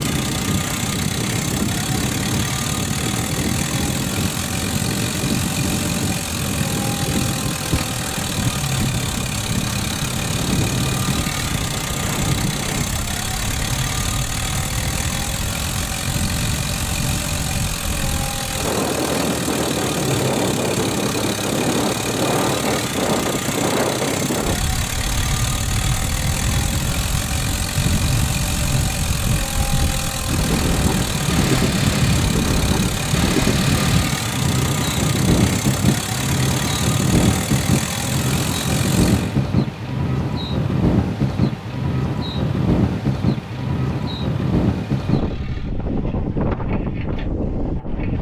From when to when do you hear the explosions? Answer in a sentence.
The explosions can't be heard in this clip.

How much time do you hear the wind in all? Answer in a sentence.
The wind can be heard for 48 seconds in total.